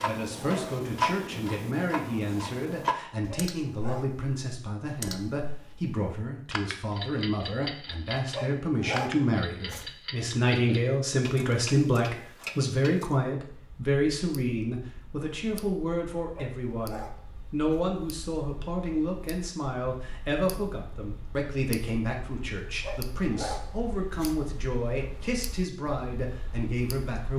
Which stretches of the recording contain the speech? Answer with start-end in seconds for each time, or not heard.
0.0-27.3.